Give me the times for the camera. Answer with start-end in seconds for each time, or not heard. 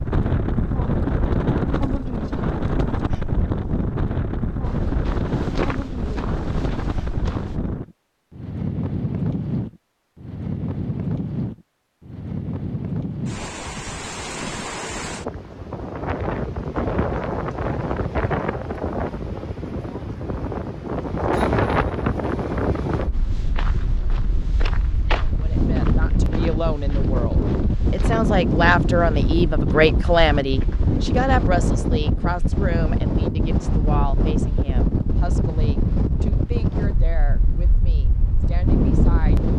not heard.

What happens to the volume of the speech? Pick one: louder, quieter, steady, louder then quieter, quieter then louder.
louder then quieter.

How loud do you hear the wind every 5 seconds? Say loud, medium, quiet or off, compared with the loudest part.
loud, loud, medium, loud, loud, loud, loud, loud.